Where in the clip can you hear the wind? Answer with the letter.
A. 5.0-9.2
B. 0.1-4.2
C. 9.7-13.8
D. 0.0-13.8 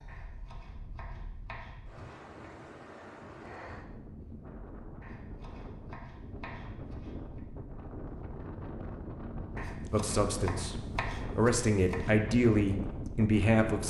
D.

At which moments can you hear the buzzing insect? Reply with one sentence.
You can't hear the buzzing insect here.